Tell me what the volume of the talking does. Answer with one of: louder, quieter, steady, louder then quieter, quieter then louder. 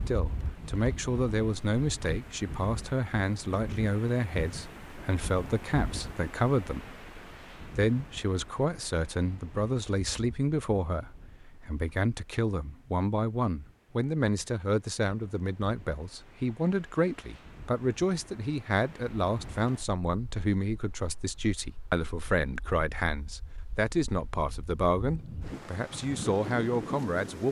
steady.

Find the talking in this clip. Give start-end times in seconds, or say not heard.
0.0-27.4.